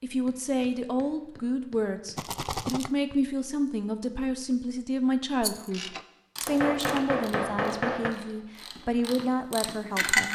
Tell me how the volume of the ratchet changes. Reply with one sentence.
The loudness of the ratchet goes down, then up.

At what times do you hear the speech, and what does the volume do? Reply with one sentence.
The speech can be heard from 0.0 to 10.3 s, at a steady volume.